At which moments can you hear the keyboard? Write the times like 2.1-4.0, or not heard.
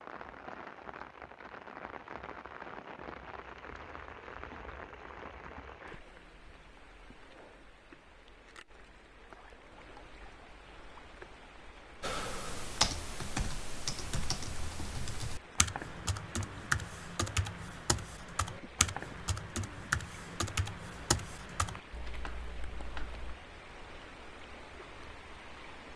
12.0-23.4.